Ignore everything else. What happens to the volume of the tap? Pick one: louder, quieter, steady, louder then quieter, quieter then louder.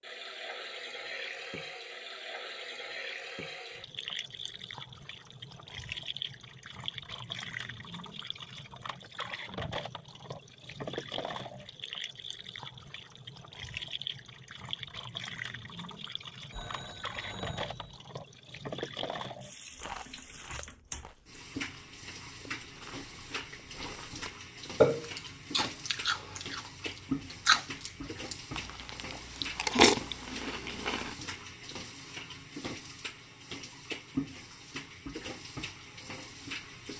steady.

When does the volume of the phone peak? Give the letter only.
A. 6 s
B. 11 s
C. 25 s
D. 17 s
D.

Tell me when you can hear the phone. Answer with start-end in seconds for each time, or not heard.
16.5-18.0.